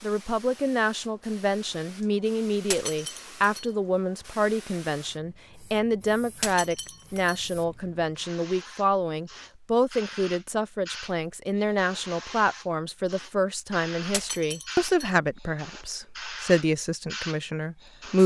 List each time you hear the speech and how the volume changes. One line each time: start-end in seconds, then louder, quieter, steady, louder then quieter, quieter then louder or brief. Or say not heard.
0.0-18.2 steady.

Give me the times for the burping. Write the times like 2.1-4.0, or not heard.
not heard.